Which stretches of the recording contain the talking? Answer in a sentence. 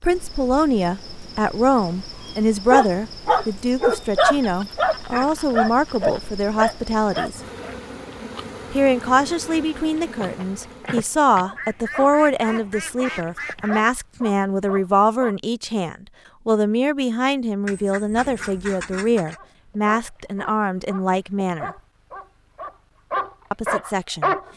You can hear the talking from 0.0 to 7.4 s, from 8.7 to 21.7 s and from 23.5 to 24.4 s.